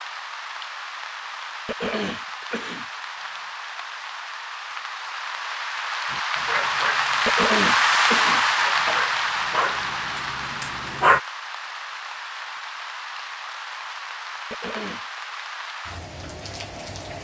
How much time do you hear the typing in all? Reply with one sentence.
You can't hear the typing here.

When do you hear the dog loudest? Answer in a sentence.
The volume of the dog peaks at 11 seconds.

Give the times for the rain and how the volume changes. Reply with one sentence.
You can hear the rain from 0.0 to 17.2 s, getting louder then quieter.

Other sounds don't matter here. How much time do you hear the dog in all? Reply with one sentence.
The dog can be heard for 5 seconds in total.